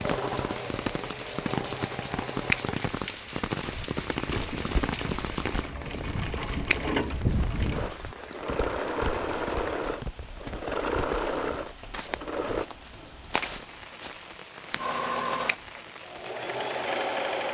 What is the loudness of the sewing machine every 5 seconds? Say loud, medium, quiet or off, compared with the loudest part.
medium, loud, loud, loud.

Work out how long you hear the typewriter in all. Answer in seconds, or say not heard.
not heard.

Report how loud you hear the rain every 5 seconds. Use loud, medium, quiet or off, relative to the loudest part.
loud, medium, quiet, medium.